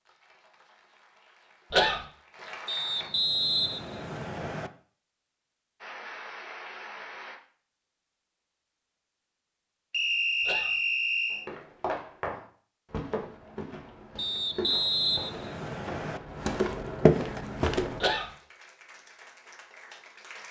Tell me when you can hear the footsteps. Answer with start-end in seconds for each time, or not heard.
11.3-18.1.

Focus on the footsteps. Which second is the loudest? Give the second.
17 s.